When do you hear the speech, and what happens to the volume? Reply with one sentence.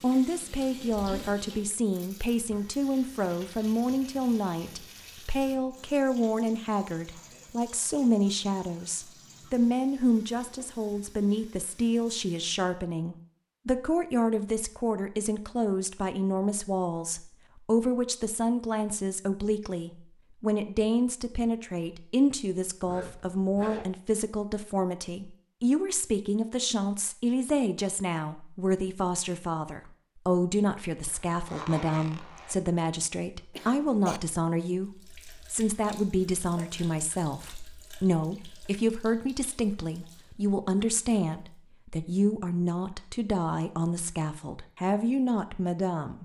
You can hear the speech from 0.0 to 46.2 s, at a steady volume.